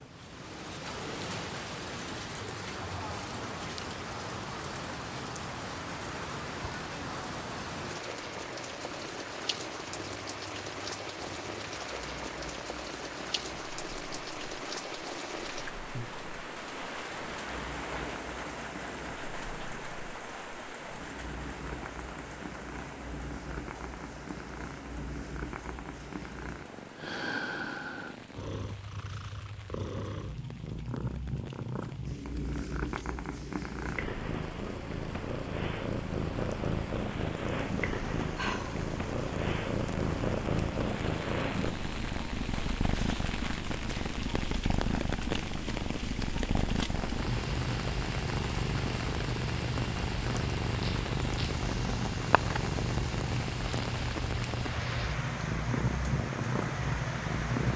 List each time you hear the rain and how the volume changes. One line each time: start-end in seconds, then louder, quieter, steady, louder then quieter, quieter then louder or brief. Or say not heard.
0.0-57.7 quieter then louder.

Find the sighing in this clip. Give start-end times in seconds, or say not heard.
38.4-38.8.